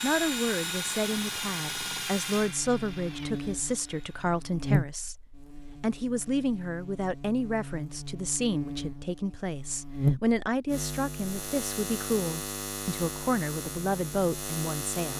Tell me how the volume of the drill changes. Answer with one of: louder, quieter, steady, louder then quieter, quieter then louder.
quieter.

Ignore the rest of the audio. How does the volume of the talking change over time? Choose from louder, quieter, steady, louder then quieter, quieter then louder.
steady.